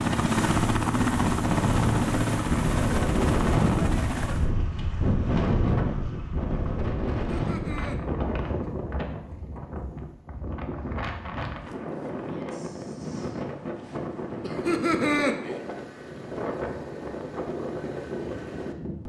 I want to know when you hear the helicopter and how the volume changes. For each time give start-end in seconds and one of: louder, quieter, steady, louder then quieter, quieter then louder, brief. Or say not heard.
0.0-4.5 quieter.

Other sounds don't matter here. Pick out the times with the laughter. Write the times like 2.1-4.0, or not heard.
7.2-8.0, 14.4-15.3.